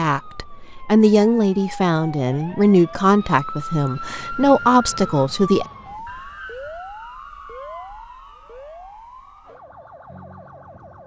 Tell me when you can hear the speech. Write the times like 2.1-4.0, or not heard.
0.0-5.7.